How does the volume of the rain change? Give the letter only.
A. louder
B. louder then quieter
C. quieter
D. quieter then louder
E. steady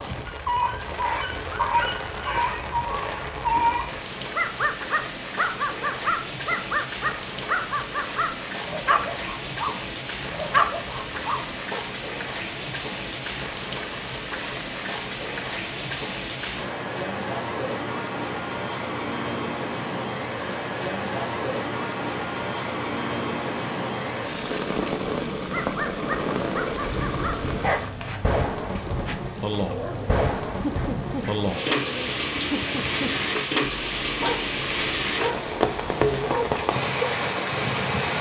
A.